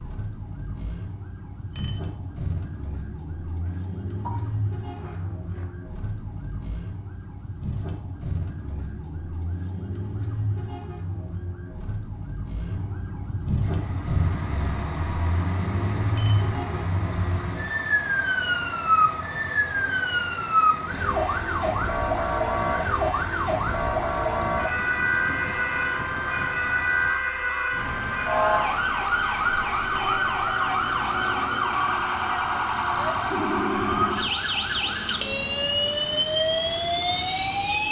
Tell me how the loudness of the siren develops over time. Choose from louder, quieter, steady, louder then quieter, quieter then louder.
louder.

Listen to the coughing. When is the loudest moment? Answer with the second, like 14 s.
4 s.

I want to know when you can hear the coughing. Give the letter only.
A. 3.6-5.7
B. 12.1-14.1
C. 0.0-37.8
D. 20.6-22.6
A.